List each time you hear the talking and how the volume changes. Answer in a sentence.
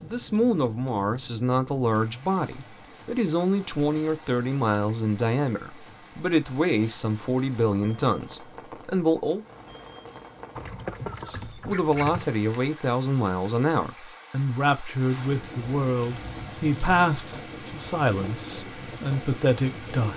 The talking can be heard from 0.0 to 9.4 s, at a steady volume; and from 11.2 to 20.1 s, at a steady volume.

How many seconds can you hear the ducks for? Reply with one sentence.
The ducks can be heard for 2 seconds in total.